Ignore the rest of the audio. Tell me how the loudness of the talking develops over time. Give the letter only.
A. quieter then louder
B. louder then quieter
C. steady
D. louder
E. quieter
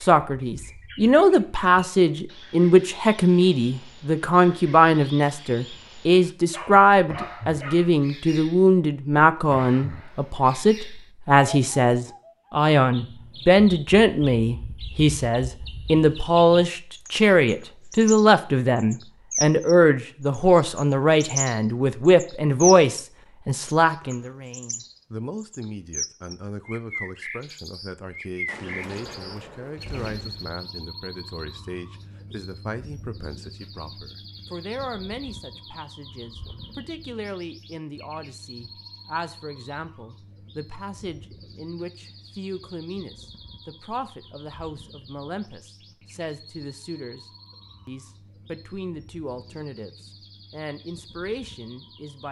E.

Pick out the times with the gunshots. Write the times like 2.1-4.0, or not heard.
28.4-30.5.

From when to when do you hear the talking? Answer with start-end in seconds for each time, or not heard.
0.0-47.2, 47.9-52.2.